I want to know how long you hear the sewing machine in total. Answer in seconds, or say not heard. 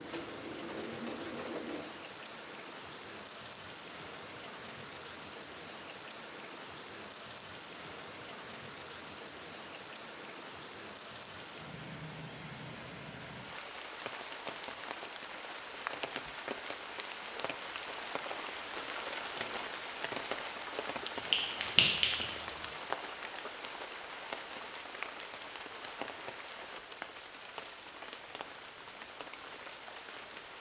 2 s.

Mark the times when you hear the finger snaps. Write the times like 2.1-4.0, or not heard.
21.1-22.8.